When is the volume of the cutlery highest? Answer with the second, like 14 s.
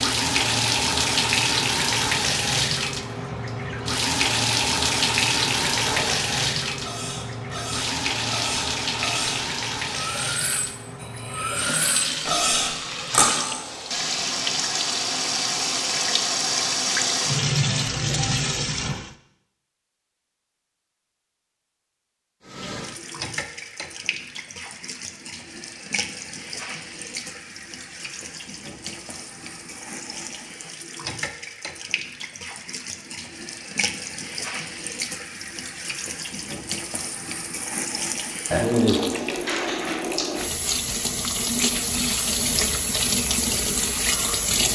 13 s.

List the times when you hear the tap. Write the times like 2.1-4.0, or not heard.
0.0-19.1, 22.4-44.7.